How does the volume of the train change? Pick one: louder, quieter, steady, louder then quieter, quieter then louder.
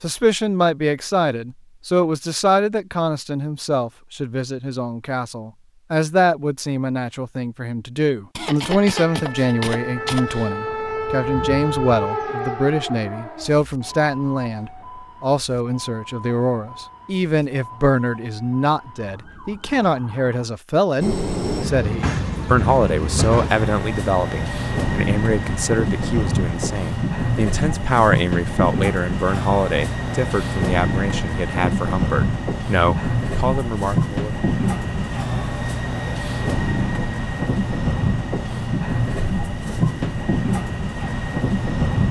steady.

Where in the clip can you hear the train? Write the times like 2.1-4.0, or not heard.
21.0-42.0.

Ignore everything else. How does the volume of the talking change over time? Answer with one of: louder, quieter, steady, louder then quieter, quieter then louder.
steady.